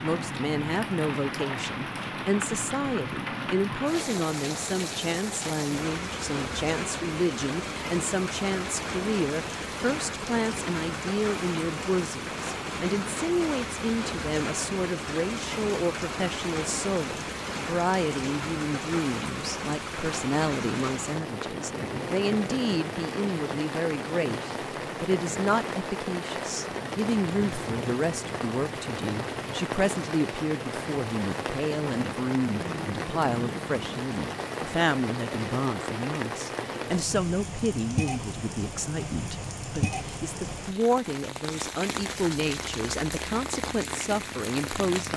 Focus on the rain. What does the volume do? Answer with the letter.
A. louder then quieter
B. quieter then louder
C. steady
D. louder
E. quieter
C.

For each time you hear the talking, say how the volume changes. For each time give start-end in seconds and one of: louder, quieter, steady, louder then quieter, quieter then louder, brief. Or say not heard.
0.0-45.1 steady.